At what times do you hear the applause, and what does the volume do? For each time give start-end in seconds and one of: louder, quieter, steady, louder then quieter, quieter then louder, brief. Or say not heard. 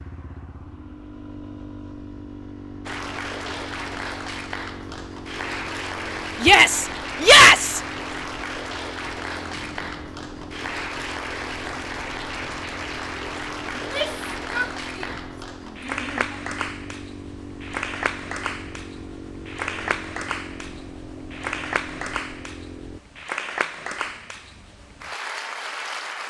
2.9-26.2 steady.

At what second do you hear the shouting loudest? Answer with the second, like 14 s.
7 s.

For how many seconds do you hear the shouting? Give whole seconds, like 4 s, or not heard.
4 s.